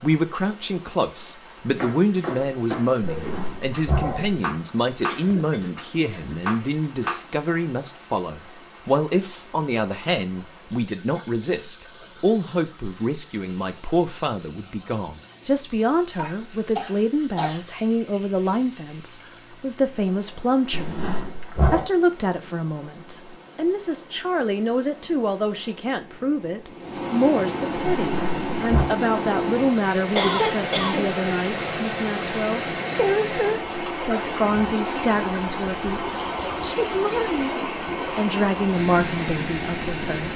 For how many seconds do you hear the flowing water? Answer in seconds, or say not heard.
40 s.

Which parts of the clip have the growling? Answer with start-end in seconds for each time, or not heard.
3.0-4.3, 20.7-21.9, 27.9-28.9.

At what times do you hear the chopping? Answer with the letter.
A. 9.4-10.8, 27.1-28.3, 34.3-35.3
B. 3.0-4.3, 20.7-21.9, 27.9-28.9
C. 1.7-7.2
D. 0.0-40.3
C.